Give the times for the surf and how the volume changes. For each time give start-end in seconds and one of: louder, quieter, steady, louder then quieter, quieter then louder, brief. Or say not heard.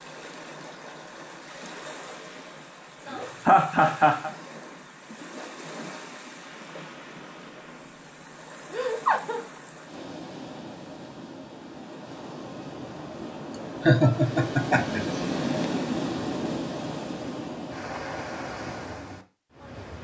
0.0-19.9 louder.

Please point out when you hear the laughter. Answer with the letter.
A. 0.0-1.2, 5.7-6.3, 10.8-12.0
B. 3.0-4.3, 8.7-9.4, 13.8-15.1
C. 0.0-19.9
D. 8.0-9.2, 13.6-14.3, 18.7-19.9
B.